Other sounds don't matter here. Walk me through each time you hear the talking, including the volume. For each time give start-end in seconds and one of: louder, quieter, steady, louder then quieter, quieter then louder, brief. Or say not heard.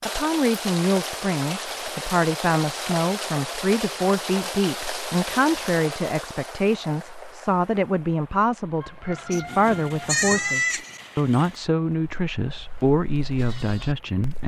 0.1-14.4 steady.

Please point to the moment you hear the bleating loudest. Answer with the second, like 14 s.
10 s.